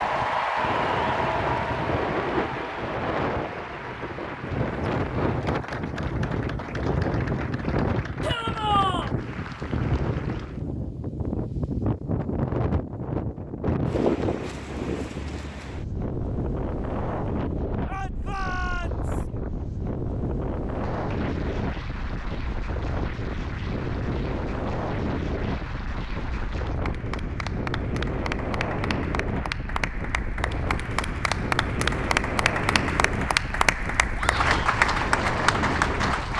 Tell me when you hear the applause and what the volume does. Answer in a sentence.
The applause can be heard from 0.0 to 10.7 s, getting quieter; and from 20.7 to 36.3 s, getting louder.